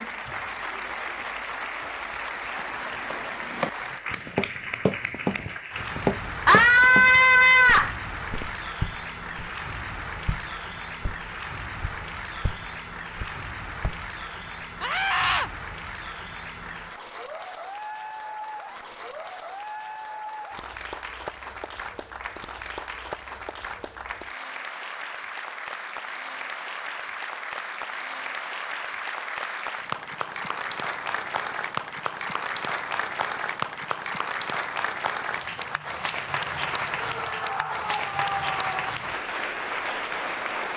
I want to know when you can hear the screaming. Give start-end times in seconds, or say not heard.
6.5-8.0, 14.8-15.5, 37.0-38.9.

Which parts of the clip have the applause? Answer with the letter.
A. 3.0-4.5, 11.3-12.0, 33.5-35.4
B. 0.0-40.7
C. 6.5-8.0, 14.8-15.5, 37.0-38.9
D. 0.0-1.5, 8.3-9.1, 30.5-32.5
B.